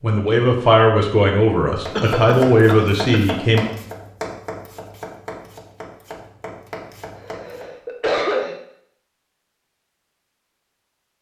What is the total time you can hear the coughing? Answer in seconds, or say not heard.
3 s.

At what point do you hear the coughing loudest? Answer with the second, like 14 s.
8 s.